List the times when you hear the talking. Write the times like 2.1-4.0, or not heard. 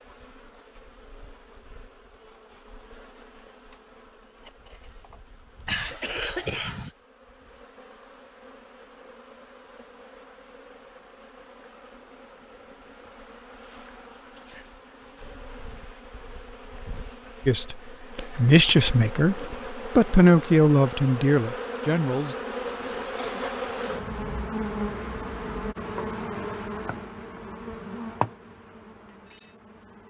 17.4-22.4.